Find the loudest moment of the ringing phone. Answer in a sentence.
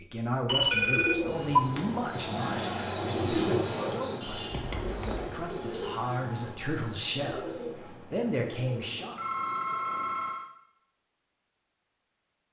The volume of the ringing phone peaks at 1 second.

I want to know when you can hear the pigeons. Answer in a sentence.
You can hear the pigeons from 0.9 to 10.3 s.